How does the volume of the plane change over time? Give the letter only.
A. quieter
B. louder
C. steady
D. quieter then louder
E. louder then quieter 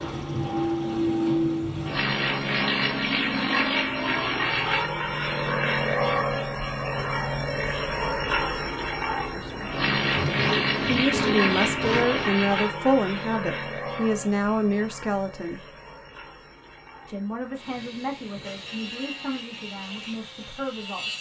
A.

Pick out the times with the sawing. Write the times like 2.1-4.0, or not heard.
10.1-12.2, 18.4-21.1.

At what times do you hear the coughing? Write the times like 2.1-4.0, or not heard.
not heard.